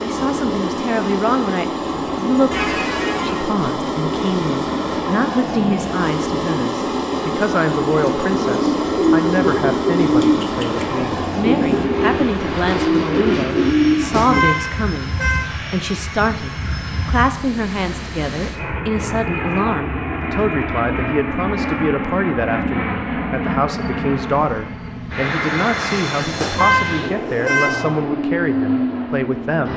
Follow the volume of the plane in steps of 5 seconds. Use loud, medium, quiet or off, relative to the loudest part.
loud, loud, loud, medium, loud, loud.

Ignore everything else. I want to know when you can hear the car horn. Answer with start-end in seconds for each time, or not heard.
2.5-3.5, 14.0-15.4, 26.2-27.9.